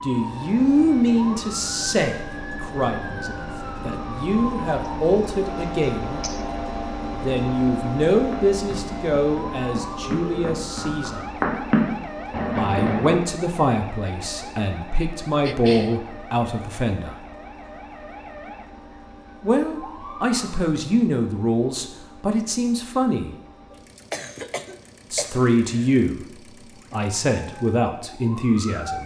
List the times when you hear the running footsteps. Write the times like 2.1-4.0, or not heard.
8.2-13.2.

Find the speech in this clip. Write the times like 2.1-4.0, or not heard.
0.0-6.2, 7.1-11.2, 12.6-17.1, 19.4-23.3, 25.1-26.2, 26.9-29.0.